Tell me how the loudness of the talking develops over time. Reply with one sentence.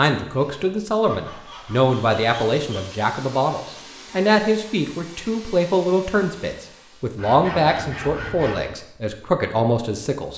The loudness of the talking stays about the same.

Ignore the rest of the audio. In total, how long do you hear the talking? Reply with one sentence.
The talking can be heard for 10 seconds in total.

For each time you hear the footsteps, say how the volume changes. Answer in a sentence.
You can't hear the footsteps here.